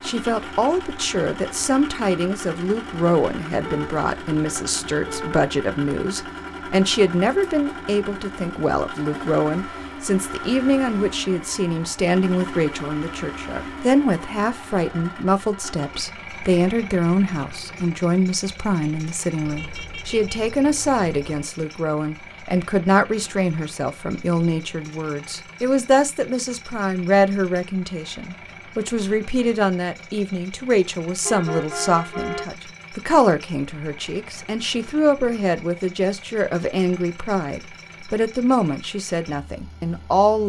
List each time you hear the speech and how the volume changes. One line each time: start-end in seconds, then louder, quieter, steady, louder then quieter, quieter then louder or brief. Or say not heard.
0.0-40.4 steady.